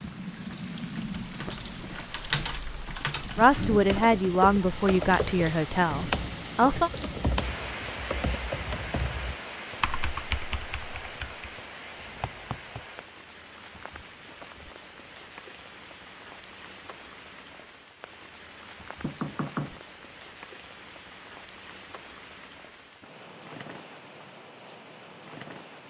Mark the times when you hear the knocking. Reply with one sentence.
The knocking can be heard from 1.4 to 2.2 s, from 12.0 to 12.8 s and from 19.0 to 19.8 s.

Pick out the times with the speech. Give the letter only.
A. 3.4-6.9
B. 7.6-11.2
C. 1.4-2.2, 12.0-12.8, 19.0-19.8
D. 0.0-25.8
A.